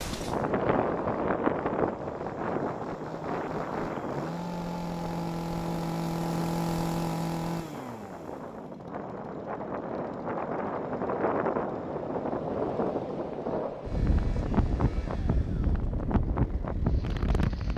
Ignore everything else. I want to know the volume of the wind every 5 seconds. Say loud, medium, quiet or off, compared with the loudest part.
loud, medium, loud, loud.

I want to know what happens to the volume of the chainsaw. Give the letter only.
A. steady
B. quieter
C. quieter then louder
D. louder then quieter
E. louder
D.